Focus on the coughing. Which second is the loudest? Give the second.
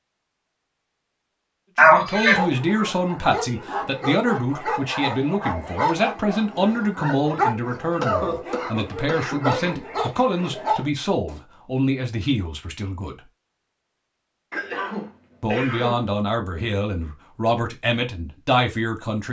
2 s.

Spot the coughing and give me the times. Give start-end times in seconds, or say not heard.
1.8-2.4, 8.0-9.8, 14.5-16.1.